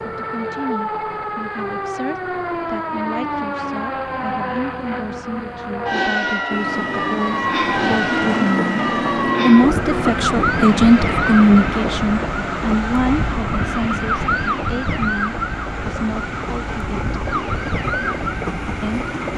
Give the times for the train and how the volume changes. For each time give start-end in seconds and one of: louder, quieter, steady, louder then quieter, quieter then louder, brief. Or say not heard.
6.5-19.3 quieter.